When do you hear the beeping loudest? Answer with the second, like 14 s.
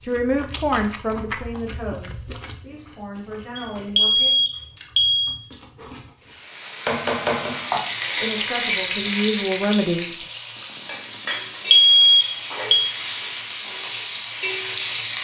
12 s.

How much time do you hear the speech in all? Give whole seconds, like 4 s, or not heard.
6 s.